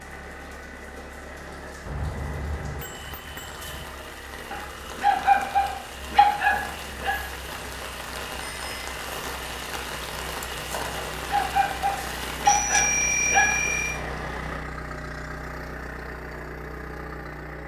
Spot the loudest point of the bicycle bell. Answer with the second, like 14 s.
13 s.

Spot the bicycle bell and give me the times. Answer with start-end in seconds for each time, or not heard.
1.9-3.9, 8.4-8.8, 12.4-14.0.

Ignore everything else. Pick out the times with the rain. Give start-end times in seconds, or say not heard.
0.0-14.6.